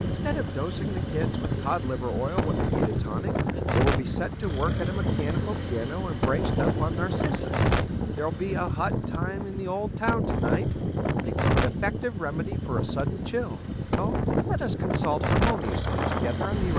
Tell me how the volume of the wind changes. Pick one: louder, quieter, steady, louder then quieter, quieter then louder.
steady.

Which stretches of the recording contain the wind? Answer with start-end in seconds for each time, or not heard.
0.0-16.7.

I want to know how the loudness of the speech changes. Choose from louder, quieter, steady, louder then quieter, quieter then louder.
steady.